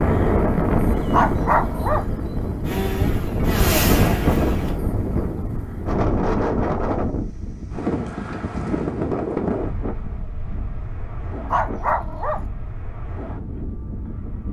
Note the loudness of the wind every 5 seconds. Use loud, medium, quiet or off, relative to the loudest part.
loud, loud, quiet.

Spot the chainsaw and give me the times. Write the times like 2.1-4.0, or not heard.
2.6-4.8.